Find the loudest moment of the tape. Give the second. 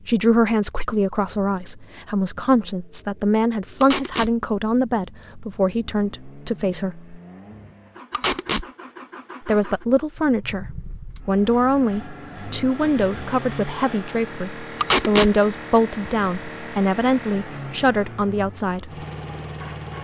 15 s.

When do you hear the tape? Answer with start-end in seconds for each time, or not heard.
3.8-4.3, 8.1-8.7, 14.8-15.3.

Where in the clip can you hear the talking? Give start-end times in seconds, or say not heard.
0.1-7.2, 9.4-18.9.